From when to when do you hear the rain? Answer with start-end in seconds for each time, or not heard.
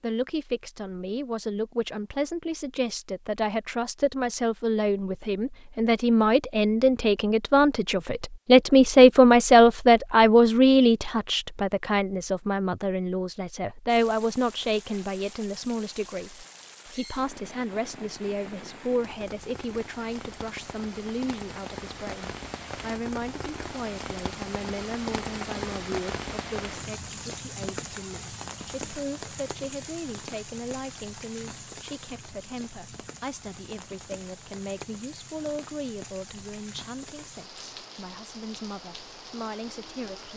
13.8-40.3.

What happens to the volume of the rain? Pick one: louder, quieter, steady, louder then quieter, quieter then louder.
louder then quieter.